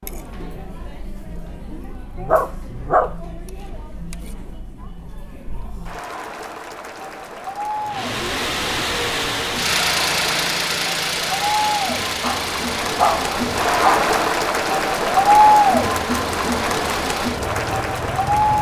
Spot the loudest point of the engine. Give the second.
10 s.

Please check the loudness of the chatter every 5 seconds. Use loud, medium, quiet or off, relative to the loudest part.
quiet, quiet, medium, loud.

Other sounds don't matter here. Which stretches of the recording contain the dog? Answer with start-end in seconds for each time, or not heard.
2.1-3.1, 12.2-14.0.